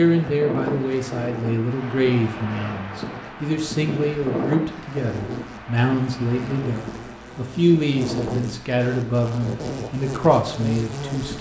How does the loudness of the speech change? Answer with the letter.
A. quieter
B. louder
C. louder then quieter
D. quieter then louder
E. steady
E.